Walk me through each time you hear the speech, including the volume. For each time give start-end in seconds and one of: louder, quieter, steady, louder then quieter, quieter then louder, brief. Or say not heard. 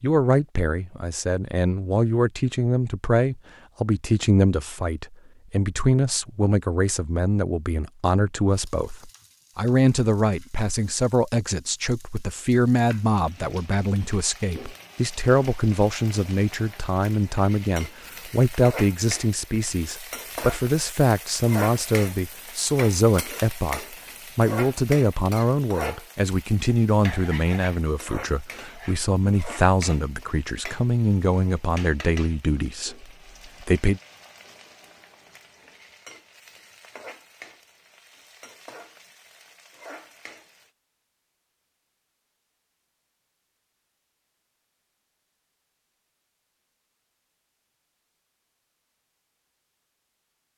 0.0-34.0 steady.